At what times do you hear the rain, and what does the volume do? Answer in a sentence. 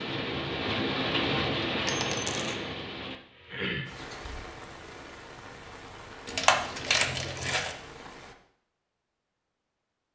The rain can be heard from 0.0 to 8.3 s, getting quieter.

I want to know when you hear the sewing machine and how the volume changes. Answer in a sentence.
You can't hear the sewing machine here.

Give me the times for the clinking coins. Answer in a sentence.
The clinking coins can be heard from 1.9 to 2.6 s and from 6.2 to 7.8 s.